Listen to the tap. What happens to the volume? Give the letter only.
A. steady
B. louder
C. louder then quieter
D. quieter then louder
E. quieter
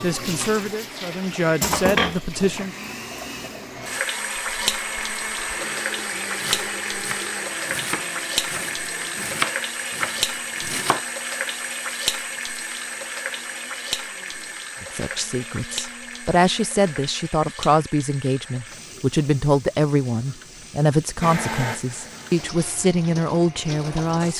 E.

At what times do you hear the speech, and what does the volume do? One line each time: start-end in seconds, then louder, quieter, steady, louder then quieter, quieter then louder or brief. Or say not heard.
0.0-2.8 brief
14.8-24.3 steady.